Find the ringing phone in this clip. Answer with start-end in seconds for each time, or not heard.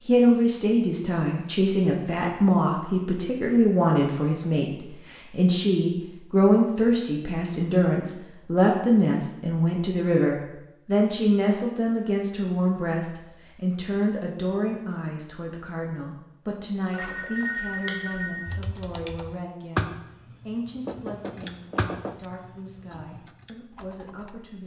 16.9-18.6.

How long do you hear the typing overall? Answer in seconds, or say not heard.
6 s.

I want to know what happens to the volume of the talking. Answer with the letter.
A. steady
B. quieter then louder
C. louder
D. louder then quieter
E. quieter
E.